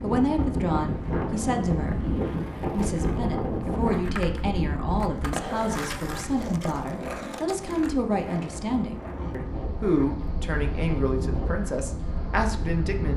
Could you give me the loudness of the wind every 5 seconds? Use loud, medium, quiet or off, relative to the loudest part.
loud, medium, medium.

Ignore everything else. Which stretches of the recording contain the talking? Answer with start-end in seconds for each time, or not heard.
0.0-13.1.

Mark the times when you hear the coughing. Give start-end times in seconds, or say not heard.
not heard.